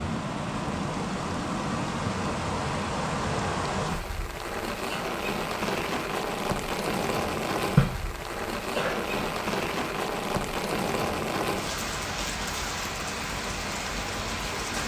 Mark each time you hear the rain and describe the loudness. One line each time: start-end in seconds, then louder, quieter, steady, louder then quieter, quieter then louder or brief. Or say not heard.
0.0-14.8 steady.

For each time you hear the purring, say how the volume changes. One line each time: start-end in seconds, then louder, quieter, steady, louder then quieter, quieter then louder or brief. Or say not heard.
not heard.